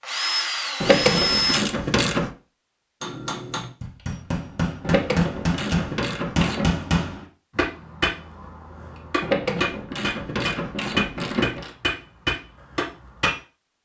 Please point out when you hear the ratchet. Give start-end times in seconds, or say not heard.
0.8-2.3, 4.8-6.8, 9.2-11.8.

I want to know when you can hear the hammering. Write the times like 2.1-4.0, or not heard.
3.0-13.3.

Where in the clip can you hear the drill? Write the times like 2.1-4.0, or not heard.
0.0-1.6.